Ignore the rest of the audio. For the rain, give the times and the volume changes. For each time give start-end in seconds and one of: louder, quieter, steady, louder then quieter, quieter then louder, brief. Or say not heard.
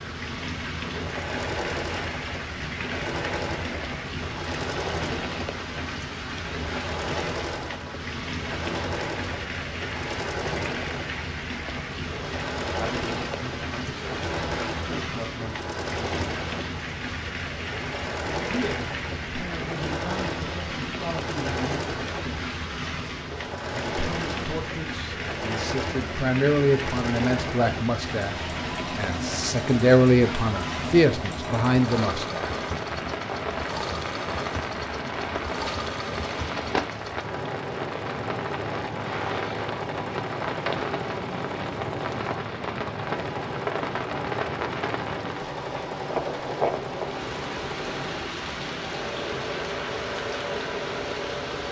0.0-51.6 steady.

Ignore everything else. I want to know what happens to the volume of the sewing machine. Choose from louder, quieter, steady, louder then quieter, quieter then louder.
steady.